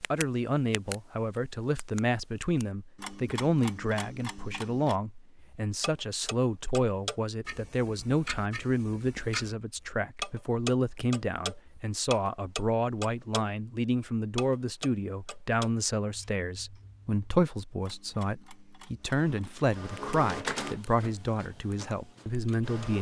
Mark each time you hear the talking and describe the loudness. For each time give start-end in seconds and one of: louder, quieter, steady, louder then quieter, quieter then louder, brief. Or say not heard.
0.0-22.9 steady.